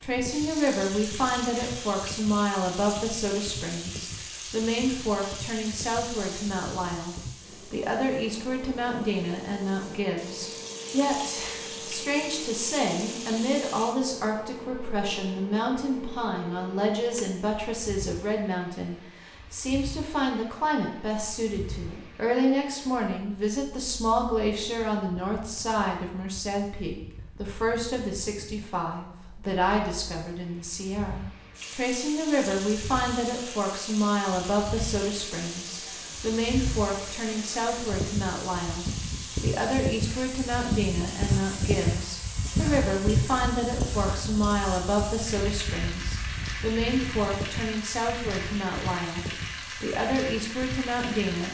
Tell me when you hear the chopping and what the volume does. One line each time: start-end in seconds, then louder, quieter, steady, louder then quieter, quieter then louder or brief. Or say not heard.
not heard.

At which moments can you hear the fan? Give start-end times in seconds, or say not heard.
0.0-51.1.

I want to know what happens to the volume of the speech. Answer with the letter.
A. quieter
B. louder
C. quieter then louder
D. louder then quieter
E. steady
E.